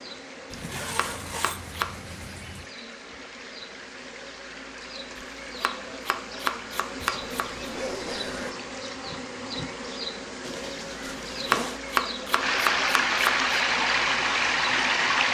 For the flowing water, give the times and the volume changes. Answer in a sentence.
You can hear the flowing water from 0.0 to 15.3 s, getting louder.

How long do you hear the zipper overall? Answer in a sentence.
You can hear the zipper for 5 seconds altogether.